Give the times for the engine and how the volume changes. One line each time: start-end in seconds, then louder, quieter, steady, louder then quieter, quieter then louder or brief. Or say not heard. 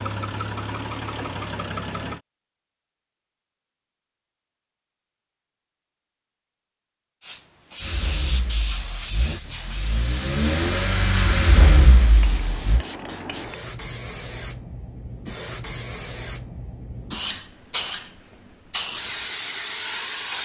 0.0-2.2 brief
7.8-12.8 louder.